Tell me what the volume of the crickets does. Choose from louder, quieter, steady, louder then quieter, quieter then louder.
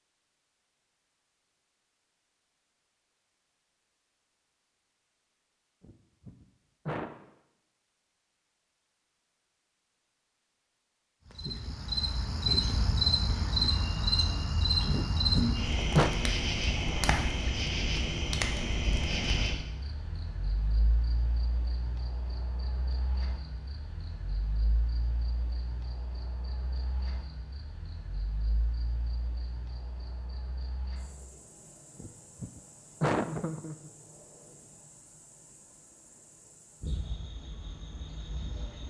quieter.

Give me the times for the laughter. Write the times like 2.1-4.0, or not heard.
5.8-7.1, 14.9-16.1, 32.0-33.9.